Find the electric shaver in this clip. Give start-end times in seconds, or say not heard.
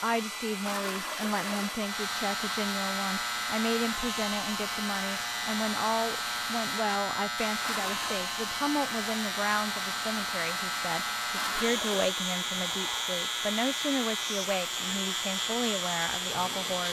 1.8-16.8.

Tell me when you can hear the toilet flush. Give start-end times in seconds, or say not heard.
0.7-1.8, 7.6-8.2, 11.3-12.1.